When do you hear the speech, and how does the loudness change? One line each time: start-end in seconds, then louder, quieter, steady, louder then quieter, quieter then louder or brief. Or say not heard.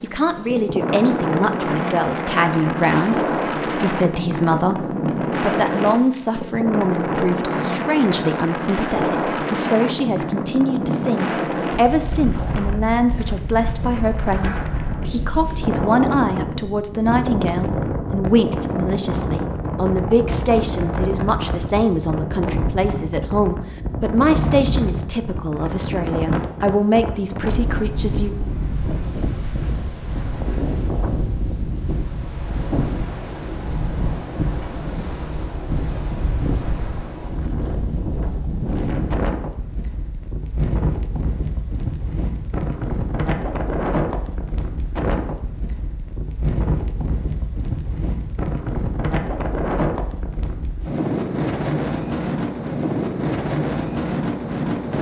0.0-28.4 steady.